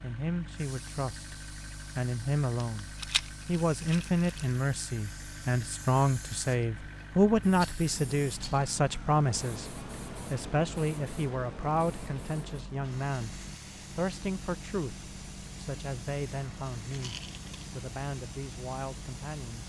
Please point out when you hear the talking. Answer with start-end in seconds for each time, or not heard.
0.0-19.6.